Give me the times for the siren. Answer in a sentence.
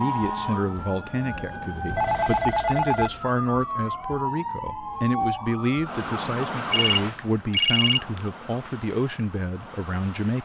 The siren can be heard from 0.0 to 10.4 s.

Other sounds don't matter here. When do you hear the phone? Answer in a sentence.
You can hear the phone from 1.9 to 3.1 s and from 6.7 to 8.2 s.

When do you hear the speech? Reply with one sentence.
The speech can be heard from 0.0 to 10.4 s.